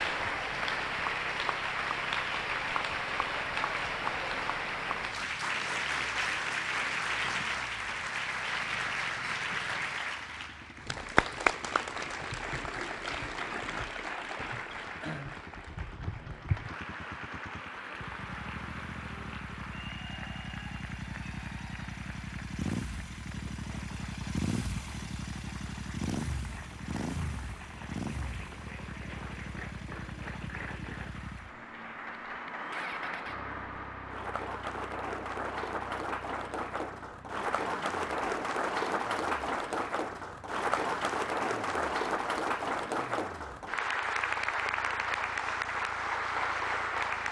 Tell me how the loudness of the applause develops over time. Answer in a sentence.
The volume of the applause goes down, then up.